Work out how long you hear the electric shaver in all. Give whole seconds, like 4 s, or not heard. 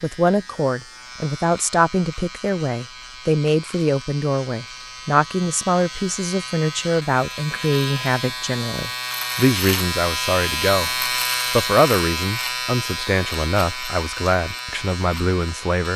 16 s.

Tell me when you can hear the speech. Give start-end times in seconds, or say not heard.
0.0-15.9.